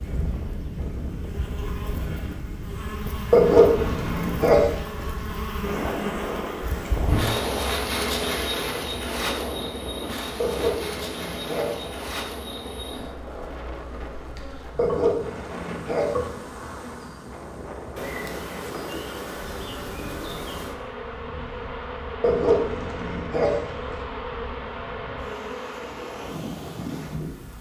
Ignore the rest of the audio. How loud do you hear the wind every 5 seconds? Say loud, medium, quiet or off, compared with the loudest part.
loud, loud, medium, medium, quiet, medium.